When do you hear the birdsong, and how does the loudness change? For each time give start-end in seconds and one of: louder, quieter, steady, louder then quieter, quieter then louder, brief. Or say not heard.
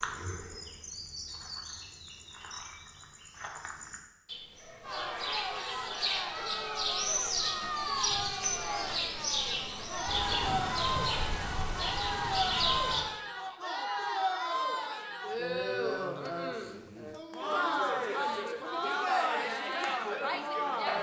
0.0-13.1 louder.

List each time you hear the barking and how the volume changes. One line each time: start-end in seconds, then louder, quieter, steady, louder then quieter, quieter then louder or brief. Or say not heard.
not heard.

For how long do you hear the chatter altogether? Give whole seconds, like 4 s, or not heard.
16 s.